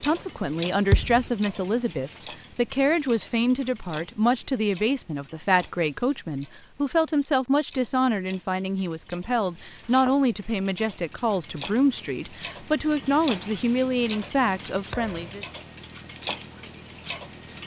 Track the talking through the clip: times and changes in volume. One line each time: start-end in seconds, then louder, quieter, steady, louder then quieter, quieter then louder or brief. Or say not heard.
0.0-15.4 steady.